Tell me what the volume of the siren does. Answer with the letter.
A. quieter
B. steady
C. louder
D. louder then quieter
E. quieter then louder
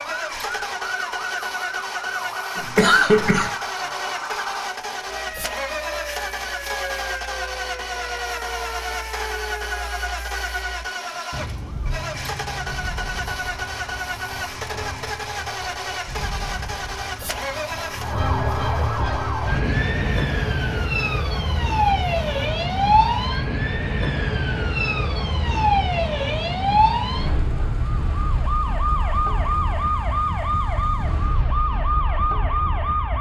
C.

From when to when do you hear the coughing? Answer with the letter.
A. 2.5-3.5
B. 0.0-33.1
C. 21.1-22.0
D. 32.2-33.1
A.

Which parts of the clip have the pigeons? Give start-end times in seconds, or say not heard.
not heard.